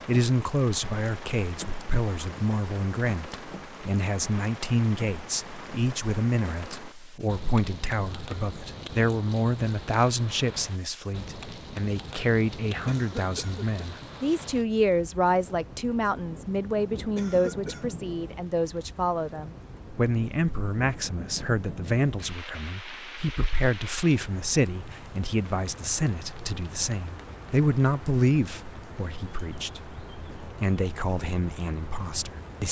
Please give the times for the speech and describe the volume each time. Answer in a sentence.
You can hear the speech from 0.1 to 32.6 s, at a steady volume.